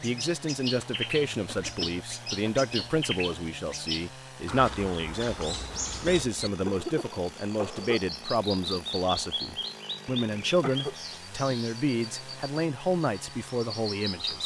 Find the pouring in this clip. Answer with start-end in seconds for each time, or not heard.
not heard.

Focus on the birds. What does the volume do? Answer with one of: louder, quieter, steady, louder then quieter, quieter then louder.
steady.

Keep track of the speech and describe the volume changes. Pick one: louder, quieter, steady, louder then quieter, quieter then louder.
steady.